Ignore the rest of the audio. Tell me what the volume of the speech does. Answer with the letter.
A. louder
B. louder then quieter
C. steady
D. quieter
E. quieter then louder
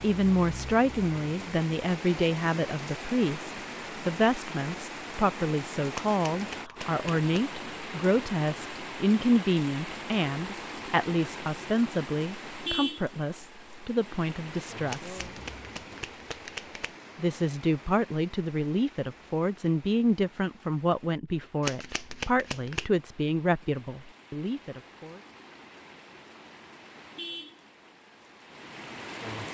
C.